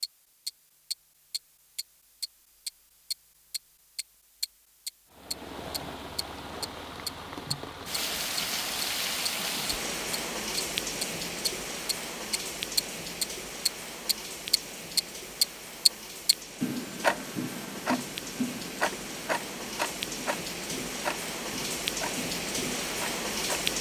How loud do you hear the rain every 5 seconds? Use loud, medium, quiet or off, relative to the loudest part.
off, loud, loud, medium, loud.